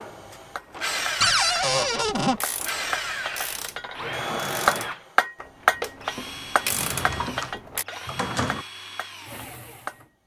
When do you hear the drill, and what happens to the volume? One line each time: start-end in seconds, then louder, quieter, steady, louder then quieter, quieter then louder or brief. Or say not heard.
0.0-10.1 quieter.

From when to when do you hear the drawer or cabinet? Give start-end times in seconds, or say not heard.
1.2-2.4, 6.7-8.7.